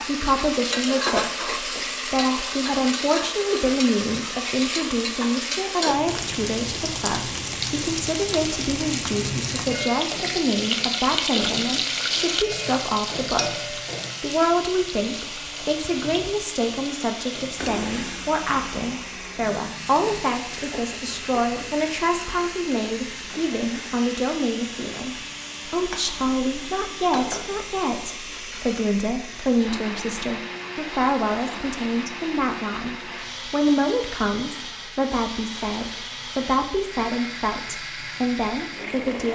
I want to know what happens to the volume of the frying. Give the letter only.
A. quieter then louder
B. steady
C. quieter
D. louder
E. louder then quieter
C.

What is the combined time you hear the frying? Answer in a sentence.
You can hear the frying for 39 seconds altogether.